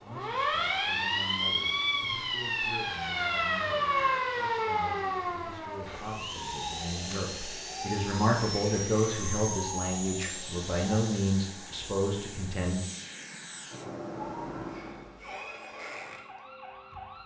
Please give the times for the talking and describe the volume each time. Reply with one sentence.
The talking can be heard from 0.0 to 12.8 s, getting louder.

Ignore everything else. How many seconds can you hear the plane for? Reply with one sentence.
The plane can be heard for 15 seconds in total.